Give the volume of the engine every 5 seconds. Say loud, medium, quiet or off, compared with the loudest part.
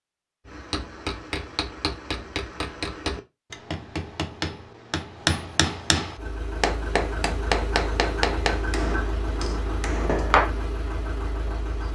off, loud, loud.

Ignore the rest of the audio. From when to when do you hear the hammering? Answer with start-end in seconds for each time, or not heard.
0.5-10.5.